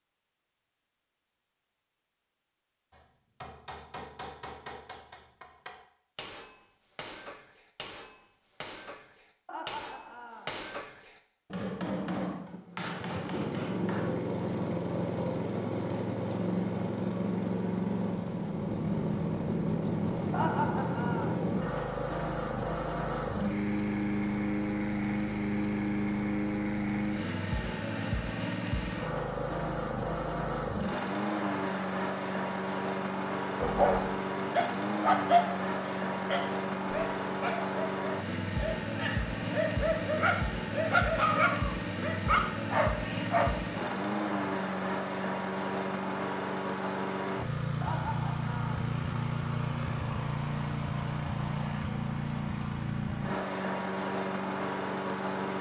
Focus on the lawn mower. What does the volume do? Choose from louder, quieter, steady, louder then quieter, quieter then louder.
steady.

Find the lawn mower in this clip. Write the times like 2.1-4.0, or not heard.
12.4-55.5.